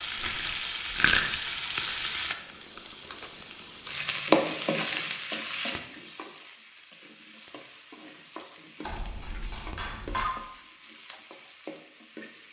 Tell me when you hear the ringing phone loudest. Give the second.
10 s.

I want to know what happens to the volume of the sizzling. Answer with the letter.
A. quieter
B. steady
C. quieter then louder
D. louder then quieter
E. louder
A.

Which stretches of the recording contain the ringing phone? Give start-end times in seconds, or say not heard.
8.8-10.3.